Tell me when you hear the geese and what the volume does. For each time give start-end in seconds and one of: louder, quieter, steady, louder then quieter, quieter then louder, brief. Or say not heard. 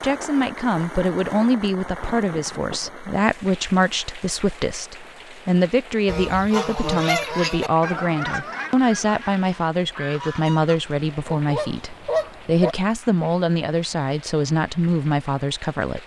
6.0-12.8 quieter then louder.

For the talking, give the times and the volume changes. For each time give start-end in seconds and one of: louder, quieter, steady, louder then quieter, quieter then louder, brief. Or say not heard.
0.0-16.0 steady.